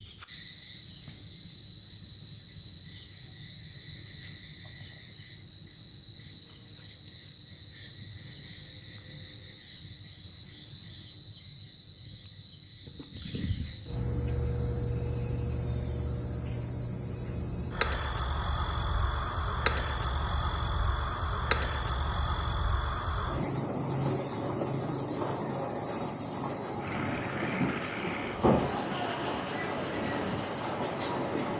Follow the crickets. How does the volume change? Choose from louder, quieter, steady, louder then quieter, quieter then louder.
steady.